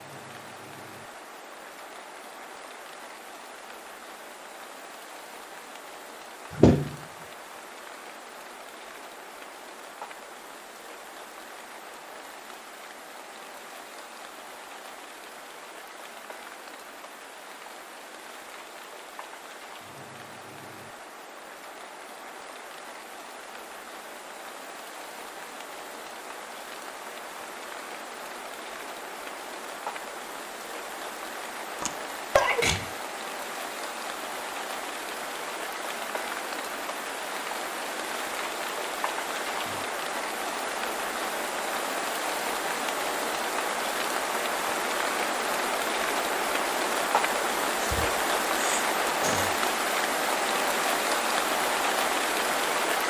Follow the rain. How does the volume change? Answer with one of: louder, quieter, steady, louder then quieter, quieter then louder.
louder.